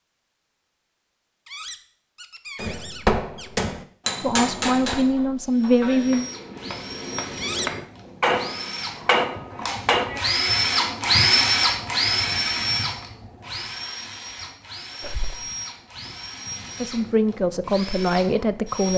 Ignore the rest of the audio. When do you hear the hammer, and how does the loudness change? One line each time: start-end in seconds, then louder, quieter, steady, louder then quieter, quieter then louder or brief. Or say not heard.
2.5-10.2 quieter then louder.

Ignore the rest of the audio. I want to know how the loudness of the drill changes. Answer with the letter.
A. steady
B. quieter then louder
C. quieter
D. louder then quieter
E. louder
D.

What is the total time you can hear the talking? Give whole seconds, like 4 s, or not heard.
4 s.